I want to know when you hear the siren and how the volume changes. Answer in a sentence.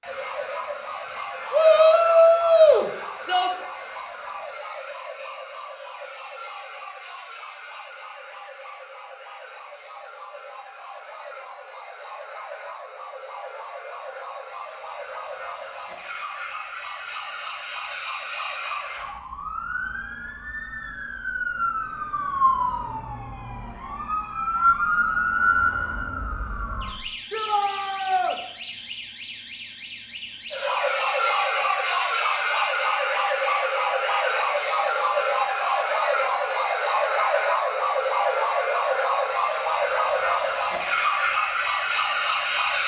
You can hear the siren from 0.0 to 42.8 s, getting louder.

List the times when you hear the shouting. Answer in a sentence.
The shouting can be heard from 1.5 to 3.5 s and from 27.3 to 28.4 s.